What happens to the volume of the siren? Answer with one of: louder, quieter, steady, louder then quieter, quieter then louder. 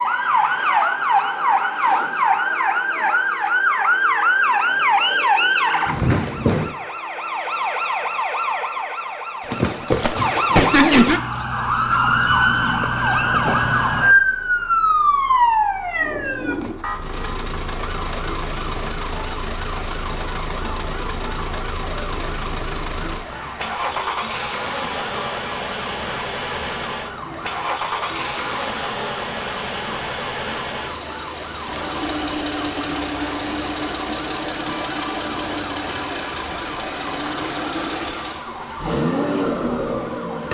quieter.